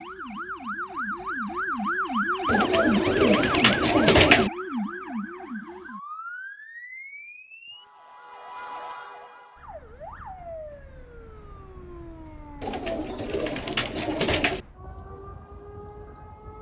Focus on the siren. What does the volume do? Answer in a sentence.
The loudness of the siren goes down.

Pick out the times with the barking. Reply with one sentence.
The barking can't be heard in this clip.